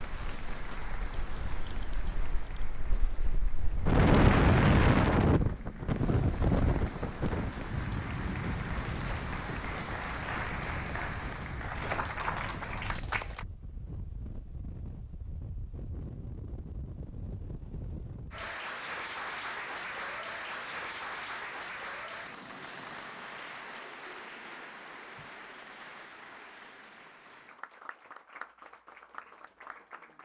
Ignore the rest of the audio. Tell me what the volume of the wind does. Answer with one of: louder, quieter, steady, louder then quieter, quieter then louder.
louder then quieter.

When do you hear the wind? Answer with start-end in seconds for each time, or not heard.
0.0-18.6.